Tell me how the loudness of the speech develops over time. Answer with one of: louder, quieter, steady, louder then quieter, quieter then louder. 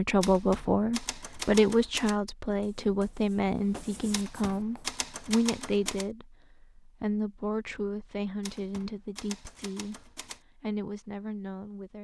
quieter.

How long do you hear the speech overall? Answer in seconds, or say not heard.
12 s.